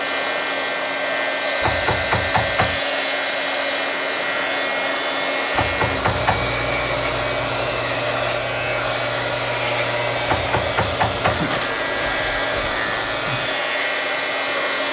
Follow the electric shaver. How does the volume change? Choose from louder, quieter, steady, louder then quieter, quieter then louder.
steady.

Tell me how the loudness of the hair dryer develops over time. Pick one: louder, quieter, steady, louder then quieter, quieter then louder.
steady.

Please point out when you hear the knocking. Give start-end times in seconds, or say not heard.
1.6-2.8, 5.5-6.5, 10.2-11.4.